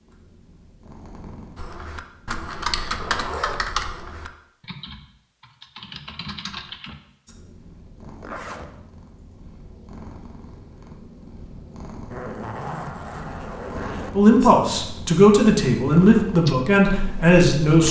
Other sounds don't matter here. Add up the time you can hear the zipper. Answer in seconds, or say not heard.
4 s.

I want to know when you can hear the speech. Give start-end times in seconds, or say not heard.
14.2-17.8.